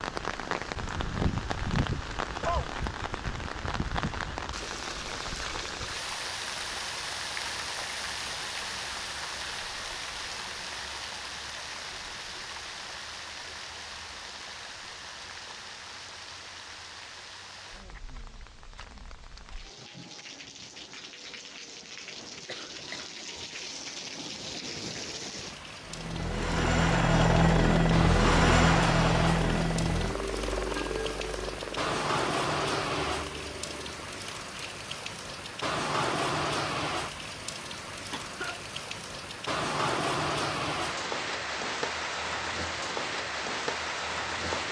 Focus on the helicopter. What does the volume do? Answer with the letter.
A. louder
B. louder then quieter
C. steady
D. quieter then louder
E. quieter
E.